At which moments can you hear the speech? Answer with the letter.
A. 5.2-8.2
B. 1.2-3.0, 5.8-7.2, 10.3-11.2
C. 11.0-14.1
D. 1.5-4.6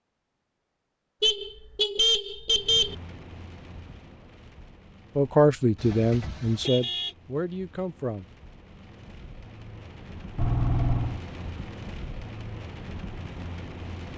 A.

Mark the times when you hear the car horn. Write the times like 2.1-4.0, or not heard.
1.2-3.0, 5.8-7.2, 10.3-11.2.